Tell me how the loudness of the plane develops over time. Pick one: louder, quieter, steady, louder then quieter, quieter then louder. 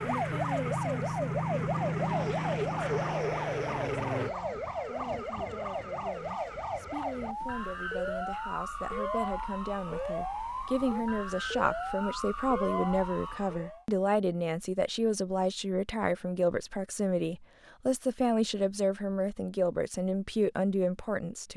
steady.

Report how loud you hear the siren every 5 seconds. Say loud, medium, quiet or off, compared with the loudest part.
loud, loud, loud, off, off.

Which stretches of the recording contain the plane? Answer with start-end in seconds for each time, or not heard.
0.0-4.3.